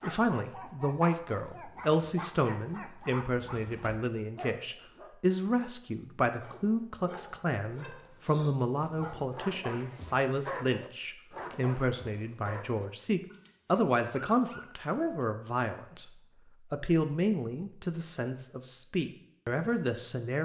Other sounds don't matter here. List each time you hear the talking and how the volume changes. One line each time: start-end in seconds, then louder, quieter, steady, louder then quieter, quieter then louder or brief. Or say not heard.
0.0-20.4 steady.